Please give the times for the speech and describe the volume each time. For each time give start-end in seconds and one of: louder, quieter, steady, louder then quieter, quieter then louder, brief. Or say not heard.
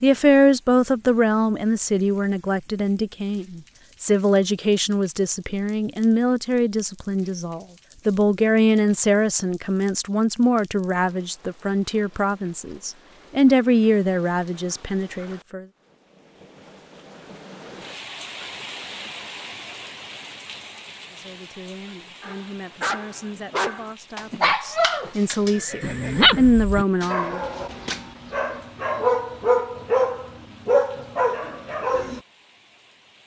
0.0-15.7 steady
21.1-27.4 louder.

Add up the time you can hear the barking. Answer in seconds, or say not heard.
10 s.